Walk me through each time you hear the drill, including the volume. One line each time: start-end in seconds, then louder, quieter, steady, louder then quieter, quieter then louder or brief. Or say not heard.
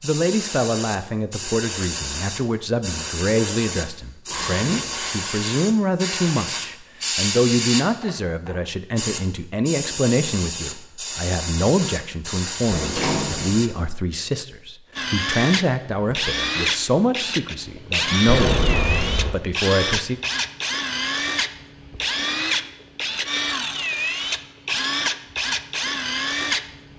14.9-26.9 steady.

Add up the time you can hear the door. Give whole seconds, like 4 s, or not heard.
3 s.